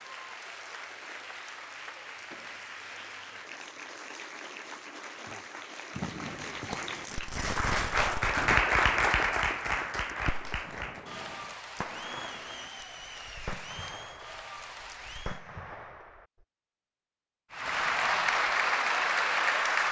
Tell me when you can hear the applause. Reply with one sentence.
The applause can be heard from 0.0 to 15.4 s and from 17.5 to 19.8 s.